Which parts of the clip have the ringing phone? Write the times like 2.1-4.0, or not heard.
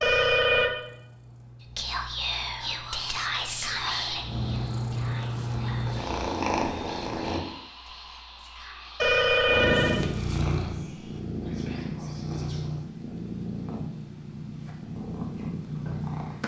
0.0-0.7, 9.0-10.0.